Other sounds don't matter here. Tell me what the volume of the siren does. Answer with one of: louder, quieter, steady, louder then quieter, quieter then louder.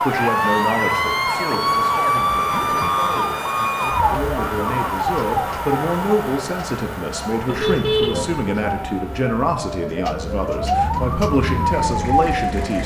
quieter then louder.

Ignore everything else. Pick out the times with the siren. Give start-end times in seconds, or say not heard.
0.0-12.8.